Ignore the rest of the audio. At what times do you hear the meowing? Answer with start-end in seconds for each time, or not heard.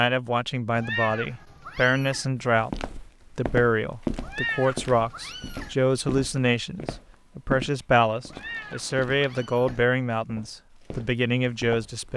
0.8-2.2, 4.2-5.8, 8.2-9.8.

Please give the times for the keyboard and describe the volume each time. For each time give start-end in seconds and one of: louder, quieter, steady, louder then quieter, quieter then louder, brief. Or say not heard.
not heard.